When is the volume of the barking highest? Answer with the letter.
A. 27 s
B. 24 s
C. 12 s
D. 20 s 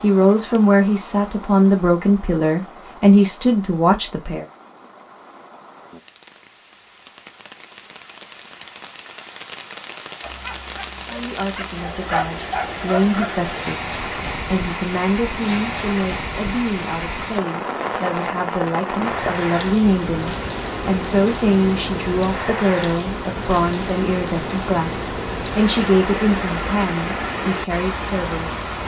C.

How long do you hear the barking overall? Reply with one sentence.
The barking can be heard for 3 seconds in total.